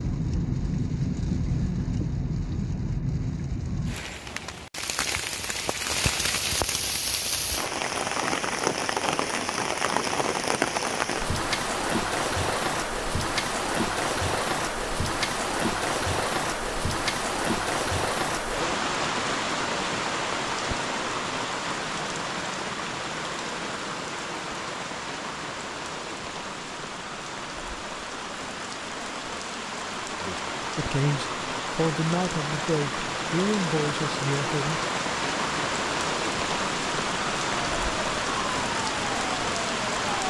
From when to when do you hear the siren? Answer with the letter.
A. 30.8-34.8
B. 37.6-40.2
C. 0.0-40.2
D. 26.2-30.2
B.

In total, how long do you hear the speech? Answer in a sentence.
The speech can be heard for 4 seconds in total.